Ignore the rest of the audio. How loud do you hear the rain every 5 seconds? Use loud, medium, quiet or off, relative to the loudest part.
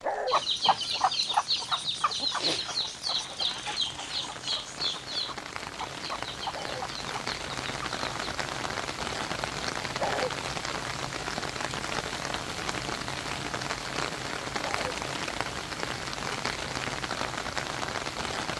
quiet, loud, loud, loud.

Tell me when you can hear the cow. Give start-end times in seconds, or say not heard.
not heard.